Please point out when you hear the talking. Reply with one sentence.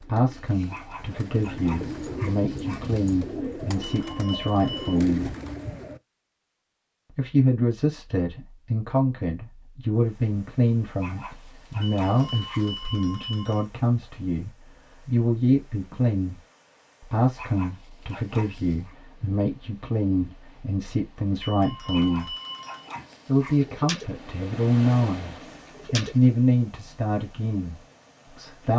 You can hear the talking from 0.0 to 5.3 s, from 7.1 to 16.4 s, from 17.0 to 22.4 s and from 23.2 to 28.7 s.